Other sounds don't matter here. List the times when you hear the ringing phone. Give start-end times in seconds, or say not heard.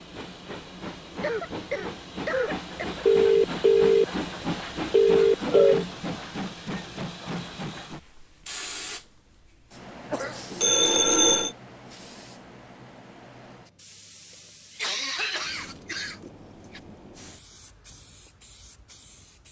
3.0-5.8, 10.6-11.5.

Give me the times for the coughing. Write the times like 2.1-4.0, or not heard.
1.2-2.9, 10.1-10.9, 14.8-16.8.